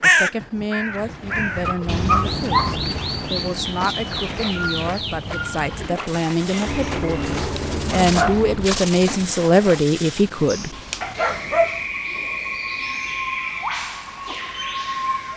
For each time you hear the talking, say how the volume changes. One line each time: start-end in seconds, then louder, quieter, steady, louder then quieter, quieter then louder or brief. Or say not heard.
0.0-10.8 louder.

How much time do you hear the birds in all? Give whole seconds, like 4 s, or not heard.
15 s.